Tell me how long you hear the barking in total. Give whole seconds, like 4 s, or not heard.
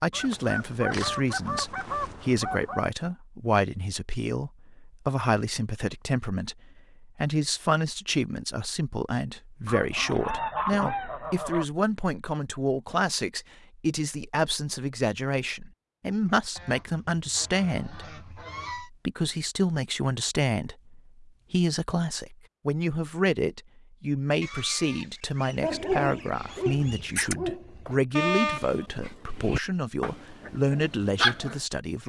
6 s.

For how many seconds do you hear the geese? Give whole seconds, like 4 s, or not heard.
10 s.